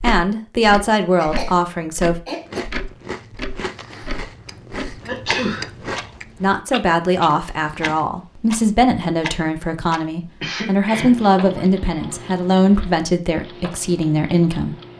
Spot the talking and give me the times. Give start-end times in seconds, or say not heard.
0.0-2.1, 6.4-14.8.